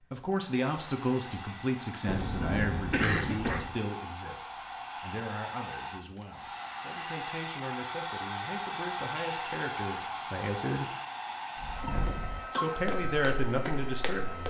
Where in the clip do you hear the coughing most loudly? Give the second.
3 s.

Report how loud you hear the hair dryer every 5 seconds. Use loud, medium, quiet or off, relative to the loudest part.
medium, loud, loud.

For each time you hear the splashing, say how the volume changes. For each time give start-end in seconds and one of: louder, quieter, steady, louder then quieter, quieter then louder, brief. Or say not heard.
not heard.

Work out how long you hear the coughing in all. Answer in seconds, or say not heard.
3 s.